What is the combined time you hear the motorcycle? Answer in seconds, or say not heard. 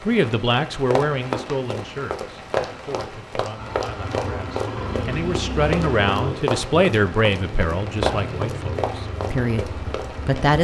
7 s.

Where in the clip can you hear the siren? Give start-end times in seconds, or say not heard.
not heard.